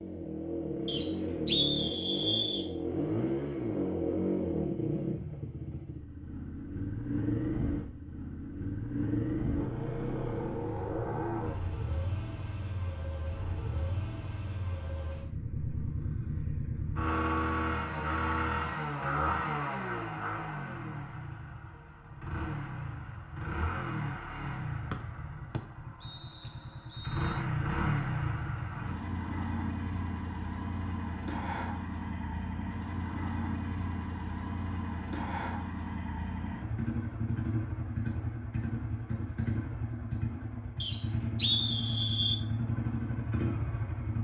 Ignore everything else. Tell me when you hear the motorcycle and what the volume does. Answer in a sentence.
The motorcycle can be heard from 0.0 to 44.1 s, at a steady volume.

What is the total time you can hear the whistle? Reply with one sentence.
The whistle can be heard for 6 seconds in total.